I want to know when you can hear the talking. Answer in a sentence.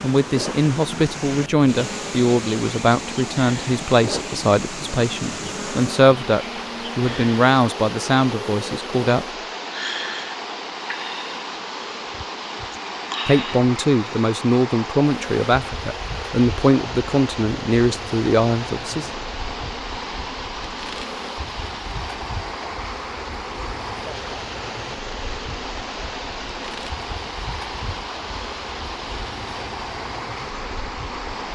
You can hear the talking from 0.0 to 9.2 s and from 13.2 to 19.1 s.